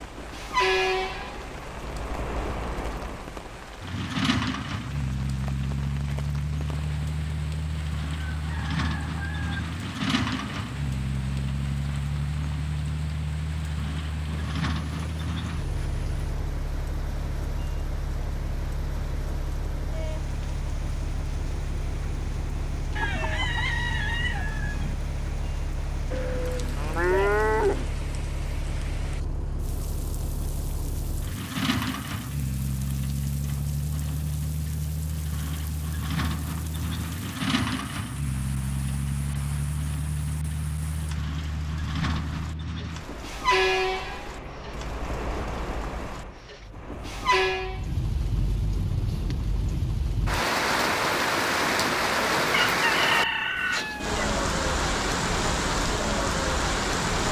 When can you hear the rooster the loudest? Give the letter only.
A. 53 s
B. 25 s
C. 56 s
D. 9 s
A.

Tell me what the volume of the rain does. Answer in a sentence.
The volume of the rain goes up.